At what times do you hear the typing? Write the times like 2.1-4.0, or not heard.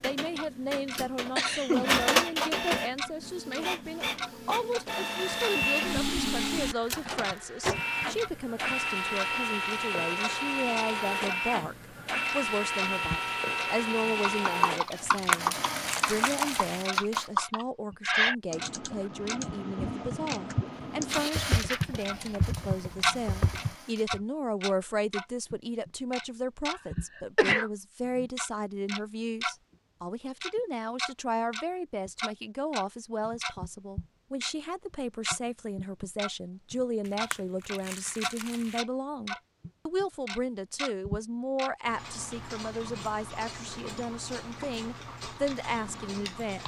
14.2-24.2.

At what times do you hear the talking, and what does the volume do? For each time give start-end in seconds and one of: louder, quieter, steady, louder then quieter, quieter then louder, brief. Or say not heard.
0.0-46.6 steady.